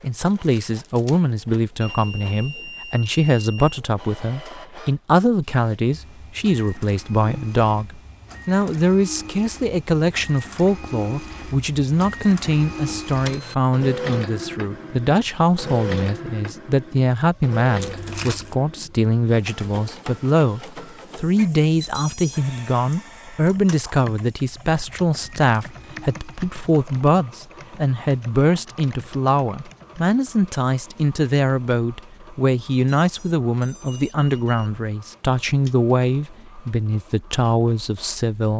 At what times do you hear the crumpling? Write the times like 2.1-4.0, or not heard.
17.8-18.6.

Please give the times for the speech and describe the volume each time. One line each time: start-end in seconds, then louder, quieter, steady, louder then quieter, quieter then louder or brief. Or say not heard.
0.0-38.5 steady.